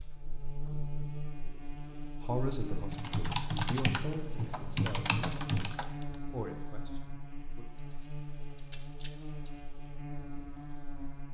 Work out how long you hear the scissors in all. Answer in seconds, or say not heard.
2 s.